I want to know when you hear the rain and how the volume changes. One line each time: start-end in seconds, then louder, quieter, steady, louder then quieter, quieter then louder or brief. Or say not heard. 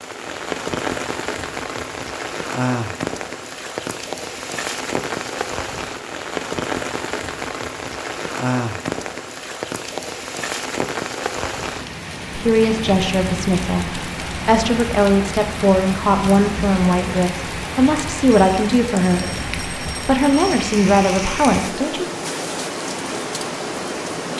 0.0-24.3 steady.